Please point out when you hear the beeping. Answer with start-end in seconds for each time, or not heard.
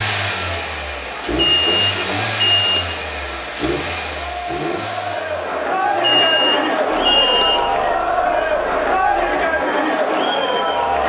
1.4-2.9, 5.8-7.8.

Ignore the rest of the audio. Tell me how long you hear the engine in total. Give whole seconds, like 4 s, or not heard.
11 s.